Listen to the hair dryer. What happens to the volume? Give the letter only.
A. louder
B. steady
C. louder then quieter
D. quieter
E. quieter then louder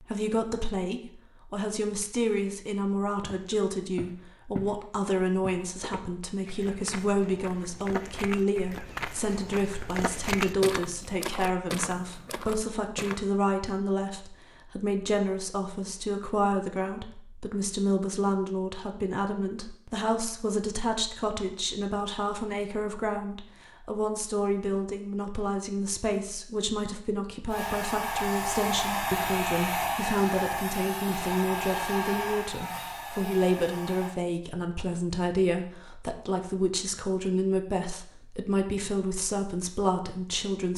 D.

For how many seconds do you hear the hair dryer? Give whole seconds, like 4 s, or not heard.
7 s.